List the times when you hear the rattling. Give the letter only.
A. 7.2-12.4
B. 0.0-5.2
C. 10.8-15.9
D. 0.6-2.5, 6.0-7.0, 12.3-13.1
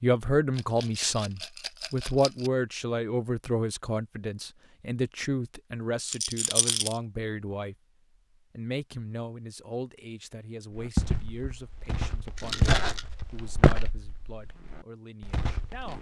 D.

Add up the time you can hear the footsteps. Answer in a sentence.
The footsteps can be heard for 5 seconds in total.